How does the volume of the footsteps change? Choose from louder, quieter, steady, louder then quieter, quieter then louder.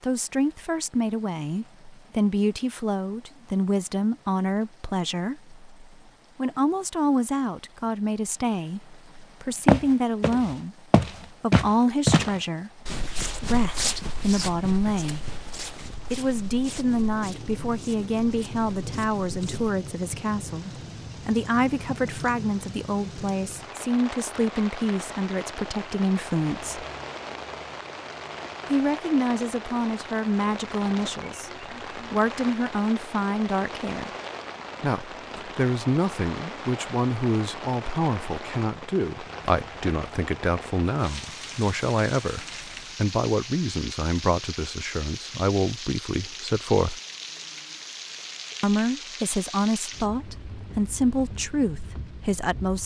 quieter.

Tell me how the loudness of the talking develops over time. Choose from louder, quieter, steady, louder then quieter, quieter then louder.
steady.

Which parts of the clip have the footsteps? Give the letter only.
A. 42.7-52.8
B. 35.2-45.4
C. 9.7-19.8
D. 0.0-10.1
C.